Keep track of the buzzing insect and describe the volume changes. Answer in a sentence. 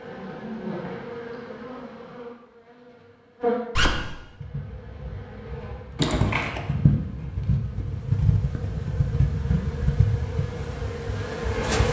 The loudness of the buzzing insect goes up.